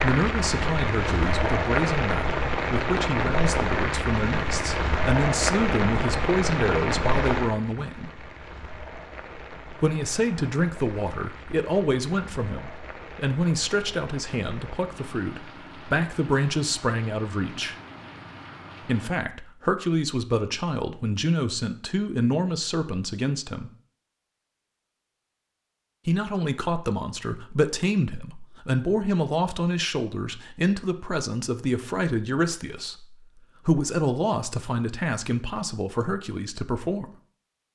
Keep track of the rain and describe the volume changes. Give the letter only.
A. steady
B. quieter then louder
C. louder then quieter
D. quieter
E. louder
D.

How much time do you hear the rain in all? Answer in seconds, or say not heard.
19 s.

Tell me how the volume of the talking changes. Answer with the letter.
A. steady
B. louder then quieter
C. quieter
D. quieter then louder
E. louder
A.